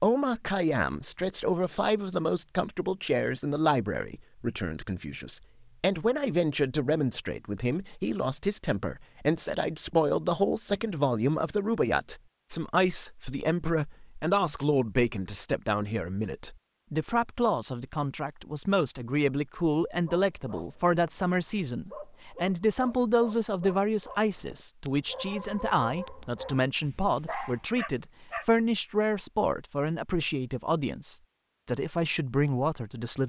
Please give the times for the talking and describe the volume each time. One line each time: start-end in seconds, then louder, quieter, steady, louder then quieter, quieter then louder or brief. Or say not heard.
0.0-33.2 steady.